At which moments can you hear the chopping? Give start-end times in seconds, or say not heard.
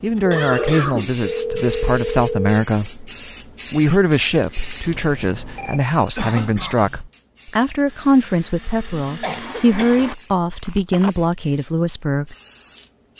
not heard.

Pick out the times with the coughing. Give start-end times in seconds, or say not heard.
0.3-1.2, 6.2-7.0, 9.2-10.1.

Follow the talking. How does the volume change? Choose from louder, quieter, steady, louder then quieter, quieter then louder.
steady.